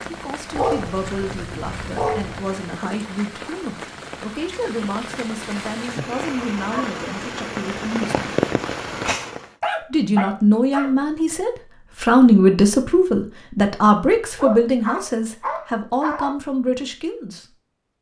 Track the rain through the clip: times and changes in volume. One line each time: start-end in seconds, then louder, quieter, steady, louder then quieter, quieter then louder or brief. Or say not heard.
0.0-9.5 louder.